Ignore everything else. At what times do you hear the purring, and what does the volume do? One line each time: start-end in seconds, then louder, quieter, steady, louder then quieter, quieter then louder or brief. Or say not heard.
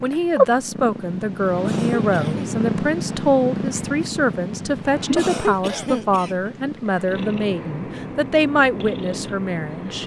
0.0-10.0 quieter.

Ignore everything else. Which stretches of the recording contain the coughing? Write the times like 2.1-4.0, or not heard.
1.6-2.5, 5.2-6.4.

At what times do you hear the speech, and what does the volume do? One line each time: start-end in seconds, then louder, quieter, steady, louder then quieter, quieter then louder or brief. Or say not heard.
0.0-10.0 steady.